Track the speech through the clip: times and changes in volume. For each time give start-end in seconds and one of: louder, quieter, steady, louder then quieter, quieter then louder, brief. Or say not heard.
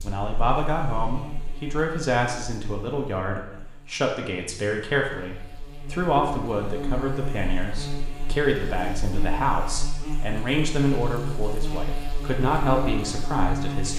0.0-13.9 steady.